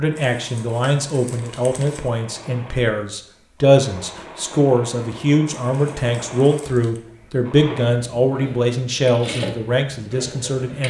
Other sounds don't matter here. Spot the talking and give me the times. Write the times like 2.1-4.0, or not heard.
0.0-10.8.